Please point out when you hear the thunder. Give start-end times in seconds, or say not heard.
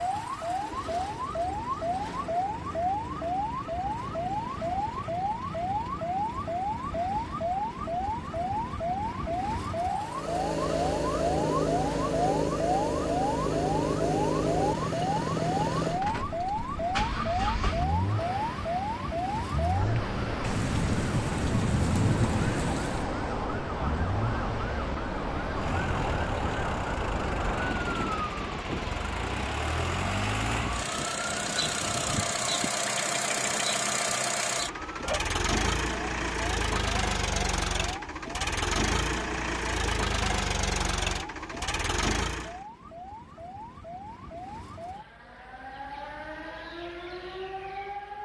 20.4-23.1.